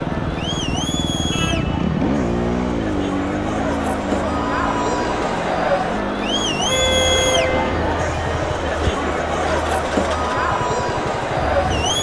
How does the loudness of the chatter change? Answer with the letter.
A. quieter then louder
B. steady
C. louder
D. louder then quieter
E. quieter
C.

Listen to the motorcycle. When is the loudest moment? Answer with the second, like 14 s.
2 s.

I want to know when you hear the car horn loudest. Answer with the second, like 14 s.
7 s.